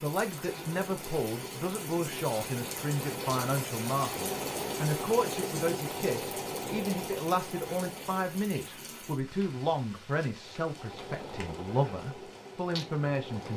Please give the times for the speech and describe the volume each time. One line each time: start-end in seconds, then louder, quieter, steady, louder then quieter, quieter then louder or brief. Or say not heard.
0.0-13.5 steady.